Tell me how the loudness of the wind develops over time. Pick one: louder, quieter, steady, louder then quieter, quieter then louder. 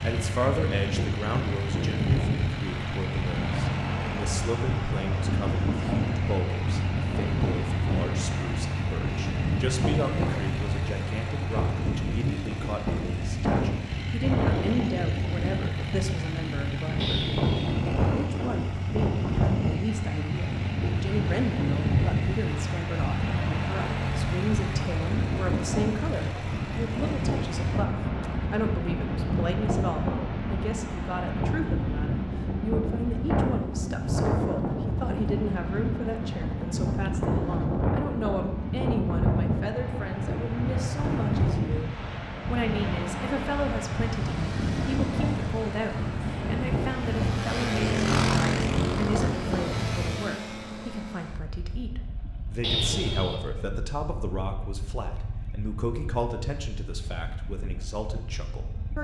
steady.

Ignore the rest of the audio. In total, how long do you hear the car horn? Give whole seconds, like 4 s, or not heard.
2 s.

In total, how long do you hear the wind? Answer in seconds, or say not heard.
50 s.